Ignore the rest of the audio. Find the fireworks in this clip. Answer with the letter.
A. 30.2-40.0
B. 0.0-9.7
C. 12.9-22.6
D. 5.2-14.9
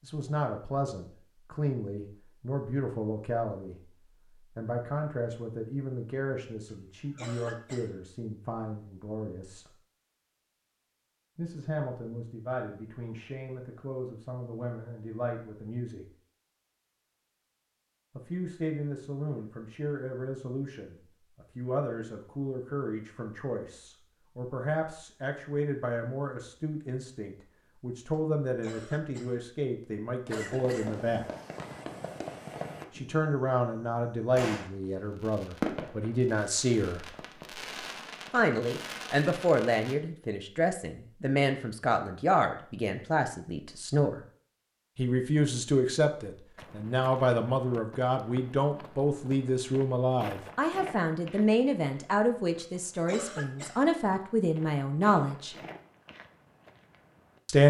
A.